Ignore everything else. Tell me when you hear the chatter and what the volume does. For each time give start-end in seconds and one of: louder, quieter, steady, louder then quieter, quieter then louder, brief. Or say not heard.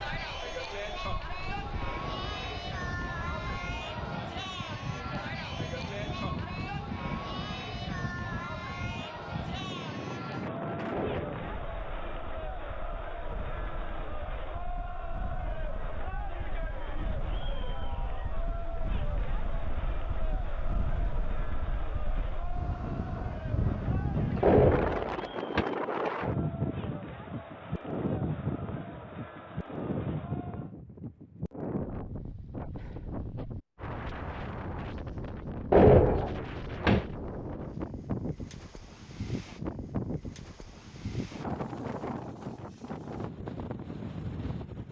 0.0-30.8 quieter.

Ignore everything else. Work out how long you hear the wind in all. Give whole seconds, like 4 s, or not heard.
45 s.